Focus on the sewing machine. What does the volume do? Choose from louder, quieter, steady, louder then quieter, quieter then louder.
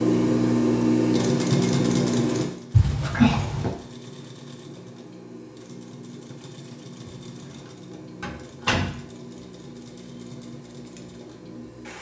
quieter.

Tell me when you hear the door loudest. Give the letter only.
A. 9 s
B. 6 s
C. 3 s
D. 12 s
C.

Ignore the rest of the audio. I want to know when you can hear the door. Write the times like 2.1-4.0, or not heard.
2.7-3.8, 8.2-9.0.